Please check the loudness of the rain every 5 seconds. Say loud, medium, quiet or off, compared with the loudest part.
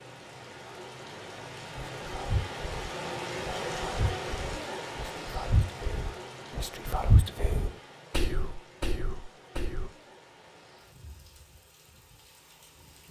loud, medium, quiet.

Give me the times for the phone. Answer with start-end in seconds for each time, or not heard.
not heard.